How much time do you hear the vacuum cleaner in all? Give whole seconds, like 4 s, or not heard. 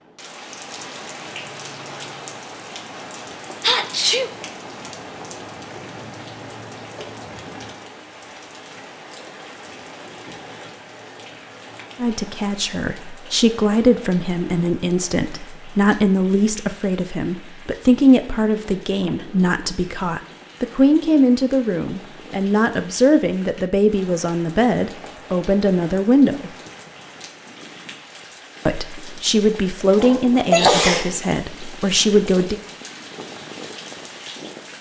not heard.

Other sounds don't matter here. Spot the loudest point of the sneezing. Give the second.
31 s.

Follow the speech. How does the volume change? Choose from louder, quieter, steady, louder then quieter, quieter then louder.
steady.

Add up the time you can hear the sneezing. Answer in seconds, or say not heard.
2 s.